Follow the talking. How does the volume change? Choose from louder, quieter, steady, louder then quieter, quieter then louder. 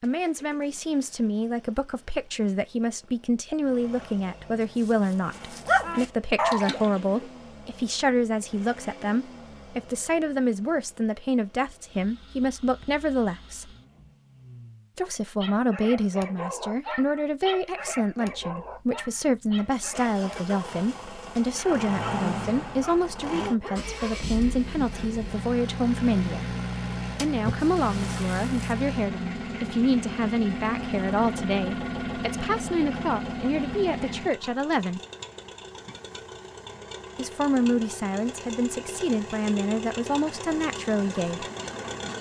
steady.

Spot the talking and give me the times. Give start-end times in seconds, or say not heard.
0.0-13.7, 14.9-26.6, 27.2-35.0, 37.1-41.5.